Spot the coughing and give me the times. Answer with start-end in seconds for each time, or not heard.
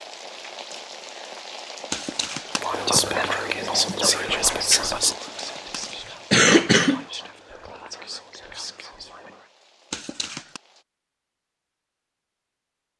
1.9-2.6, 5.1-7.0, 9.9-10.6.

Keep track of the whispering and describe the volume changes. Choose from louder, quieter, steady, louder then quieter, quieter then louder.
quieter.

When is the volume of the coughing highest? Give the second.
6 s.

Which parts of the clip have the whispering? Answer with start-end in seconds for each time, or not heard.
2.6-9.4.